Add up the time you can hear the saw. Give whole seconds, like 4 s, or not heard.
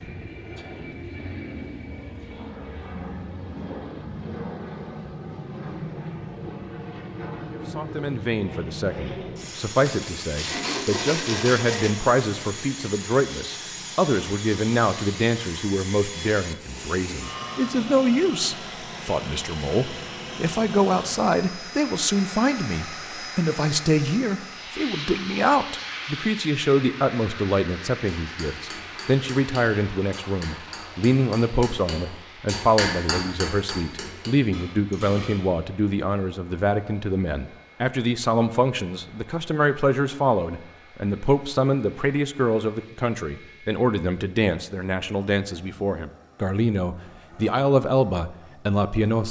2 s.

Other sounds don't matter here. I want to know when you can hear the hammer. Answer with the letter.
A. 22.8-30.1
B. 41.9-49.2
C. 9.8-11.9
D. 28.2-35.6
D.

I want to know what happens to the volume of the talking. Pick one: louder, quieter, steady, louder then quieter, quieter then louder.
steady.